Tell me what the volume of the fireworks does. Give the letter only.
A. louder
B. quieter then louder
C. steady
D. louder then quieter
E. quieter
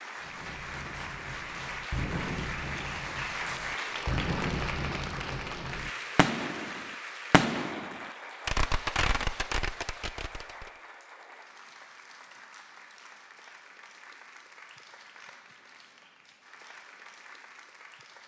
A.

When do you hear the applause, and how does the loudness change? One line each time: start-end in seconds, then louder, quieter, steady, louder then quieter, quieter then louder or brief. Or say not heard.
0.0-18.2 quieter.